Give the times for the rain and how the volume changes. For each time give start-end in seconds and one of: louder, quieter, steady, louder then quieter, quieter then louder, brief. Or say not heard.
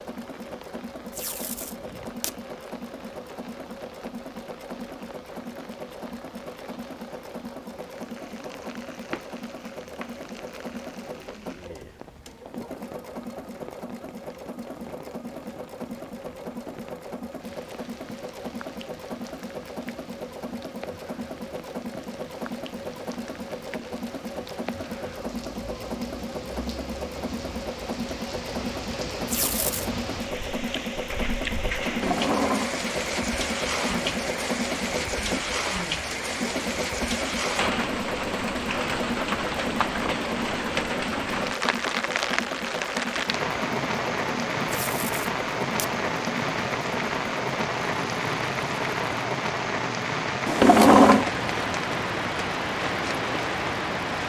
0.0-54.2 louder.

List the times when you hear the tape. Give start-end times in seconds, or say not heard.
1.1-2.4, 29.2-29.9, 44.6-45.9.